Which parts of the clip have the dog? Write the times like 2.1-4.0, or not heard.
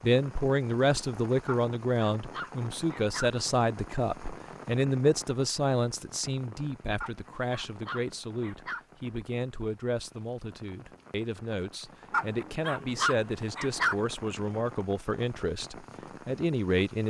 1.4-3.3, 7.0-8.8, 12.1-13.9.